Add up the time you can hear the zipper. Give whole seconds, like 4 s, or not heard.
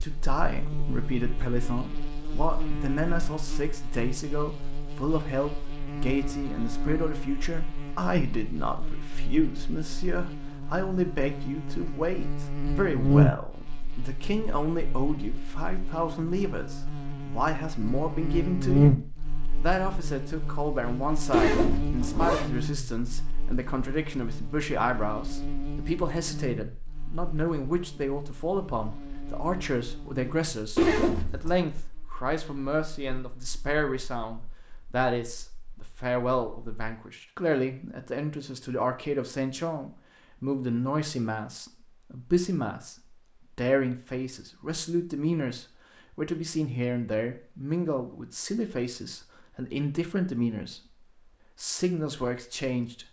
2 s.